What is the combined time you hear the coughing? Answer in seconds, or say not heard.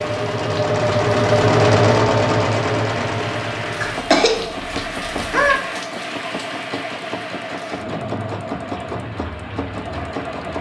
2 s.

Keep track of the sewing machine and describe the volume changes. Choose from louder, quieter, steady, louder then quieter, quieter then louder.
quieter.